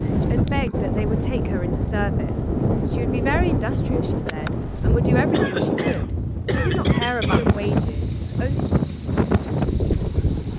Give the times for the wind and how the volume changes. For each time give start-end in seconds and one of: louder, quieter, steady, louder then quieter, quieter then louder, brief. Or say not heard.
0.0-10.5 steady.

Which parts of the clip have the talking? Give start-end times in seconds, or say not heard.
0.0-8.7.